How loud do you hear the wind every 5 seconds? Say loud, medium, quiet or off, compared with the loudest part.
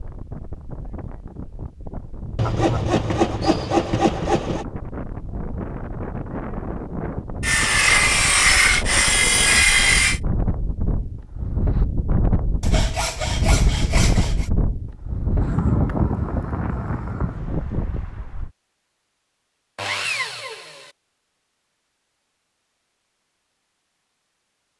medium, medium, loud, loud, off.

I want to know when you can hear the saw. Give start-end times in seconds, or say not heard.
2.4-4.7, 7.4-10.2, 12.6-14.5, 19.8-20.9.